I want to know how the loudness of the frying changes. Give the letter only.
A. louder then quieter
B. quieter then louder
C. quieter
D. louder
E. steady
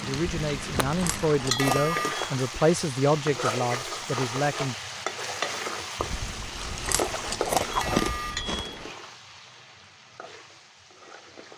C.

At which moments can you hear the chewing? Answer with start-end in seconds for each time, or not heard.
0.3-2.0, 6.0-8.8.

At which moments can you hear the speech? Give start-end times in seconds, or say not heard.
0.0-4.8.